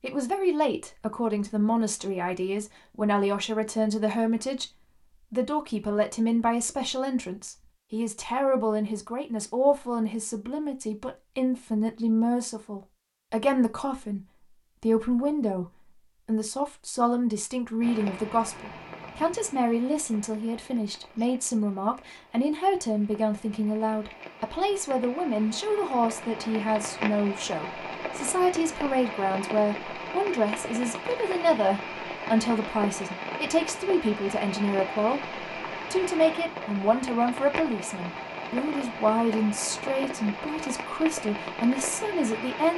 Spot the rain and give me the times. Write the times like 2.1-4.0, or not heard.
17.8-42.7.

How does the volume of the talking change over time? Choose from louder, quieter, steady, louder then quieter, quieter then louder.
steady.